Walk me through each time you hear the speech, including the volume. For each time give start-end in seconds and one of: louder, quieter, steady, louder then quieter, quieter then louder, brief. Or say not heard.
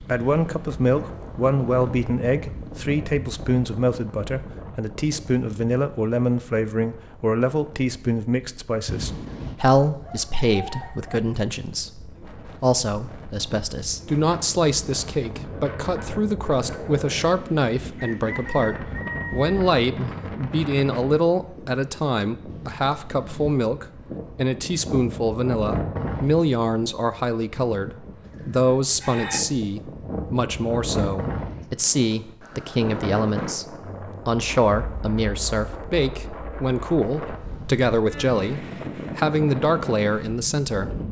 0.0-40.9 steady.